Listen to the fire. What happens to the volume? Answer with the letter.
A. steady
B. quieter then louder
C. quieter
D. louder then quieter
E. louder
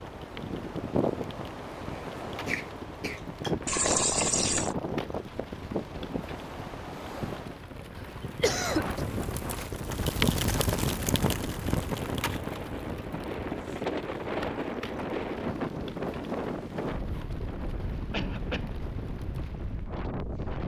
D.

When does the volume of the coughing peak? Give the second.
9 s.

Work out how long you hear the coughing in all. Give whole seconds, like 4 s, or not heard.
3 s.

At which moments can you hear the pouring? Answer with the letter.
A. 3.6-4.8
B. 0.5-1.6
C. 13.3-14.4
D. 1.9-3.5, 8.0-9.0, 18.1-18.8
A.